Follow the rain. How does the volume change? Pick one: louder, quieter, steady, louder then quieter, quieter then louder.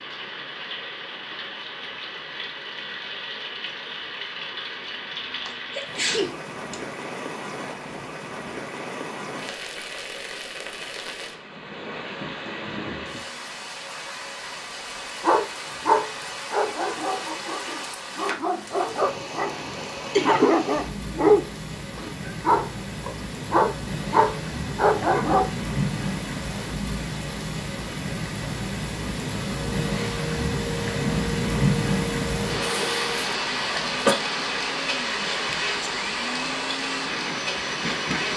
louder.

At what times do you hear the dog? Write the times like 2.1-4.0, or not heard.
15.2-25.5.